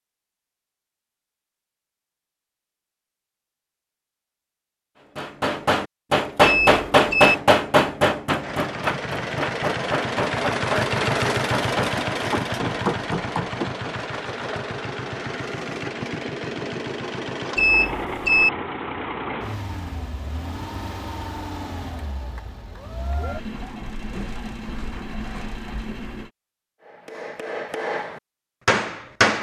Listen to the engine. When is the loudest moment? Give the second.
11 s.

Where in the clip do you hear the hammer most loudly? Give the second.
7 s.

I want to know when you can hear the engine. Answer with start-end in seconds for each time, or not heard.
8.3-26.3.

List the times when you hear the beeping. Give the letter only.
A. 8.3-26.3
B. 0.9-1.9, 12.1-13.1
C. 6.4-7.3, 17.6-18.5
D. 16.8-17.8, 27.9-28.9
C.